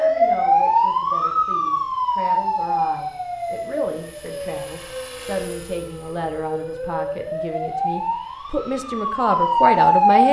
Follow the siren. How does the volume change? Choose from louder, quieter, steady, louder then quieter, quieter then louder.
quieter then louder.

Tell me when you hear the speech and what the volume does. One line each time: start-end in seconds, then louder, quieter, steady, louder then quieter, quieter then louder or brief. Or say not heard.
0.0-10.2 louder.